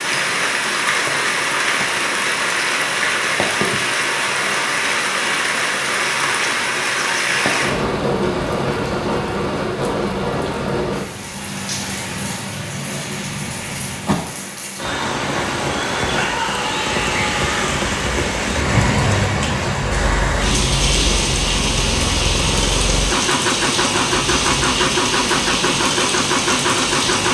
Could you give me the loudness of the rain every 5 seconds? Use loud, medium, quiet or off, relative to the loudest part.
loud, loud, medium, loud, loud, loud.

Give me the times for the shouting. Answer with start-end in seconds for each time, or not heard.
16.1-17.6.